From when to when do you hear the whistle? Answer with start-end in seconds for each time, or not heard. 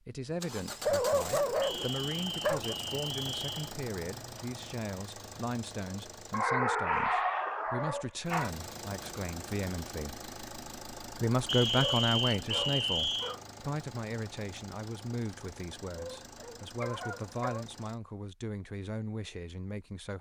1.6-3.8, 11.4-13.3.